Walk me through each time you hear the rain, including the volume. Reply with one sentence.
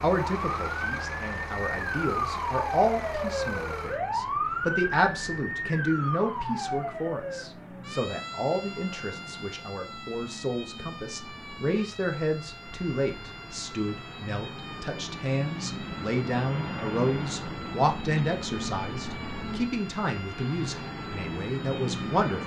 You can't hear the rain here.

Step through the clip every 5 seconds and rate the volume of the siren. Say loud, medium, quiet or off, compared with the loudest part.
loud, medium, quiet, quiet, quiet.